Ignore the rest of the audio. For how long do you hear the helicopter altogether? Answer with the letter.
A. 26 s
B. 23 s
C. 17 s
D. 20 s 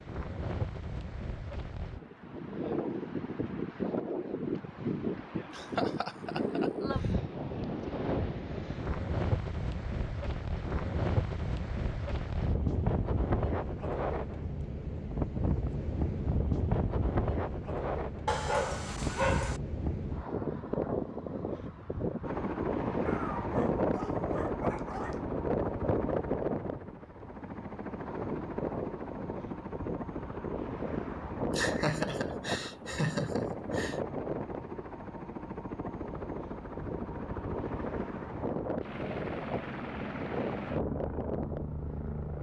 D.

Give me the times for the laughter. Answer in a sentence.
You can hear the laughter from 5.5 to 6.7 s and from 31.5 to 34.0 s.